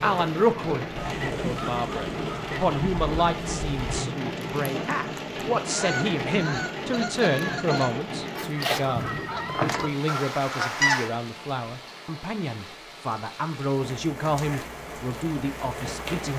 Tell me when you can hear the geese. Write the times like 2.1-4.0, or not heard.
0.9-11.1.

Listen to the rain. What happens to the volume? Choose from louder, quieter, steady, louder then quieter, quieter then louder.
quieter.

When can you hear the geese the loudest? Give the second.
11 s.